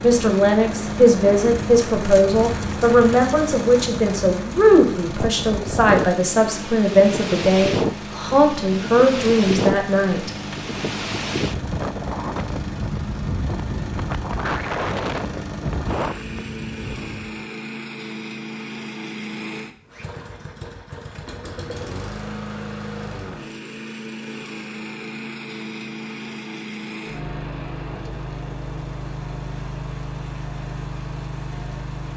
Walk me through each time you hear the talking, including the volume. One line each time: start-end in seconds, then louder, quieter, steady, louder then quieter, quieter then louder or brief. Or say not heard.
0.0-10.3 steady.